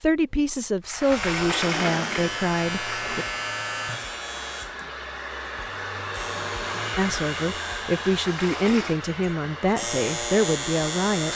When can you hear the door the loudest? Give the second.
2 s.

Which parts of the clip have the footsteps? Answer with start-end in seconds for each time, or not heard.
not heard.